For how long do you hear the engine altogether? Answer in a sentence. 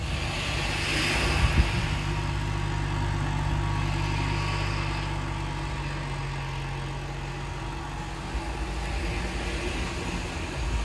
The engine can be heard for 11 seconds in total.